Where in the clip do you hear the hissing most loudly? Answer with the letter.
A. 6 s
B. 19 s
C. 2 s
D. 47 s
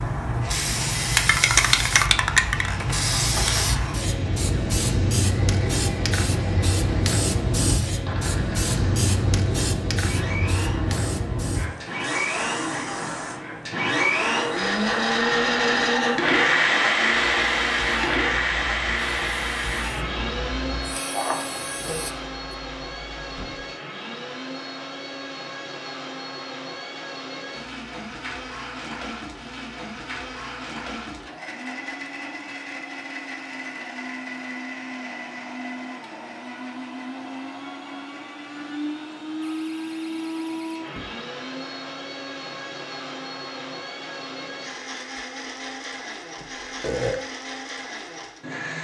C.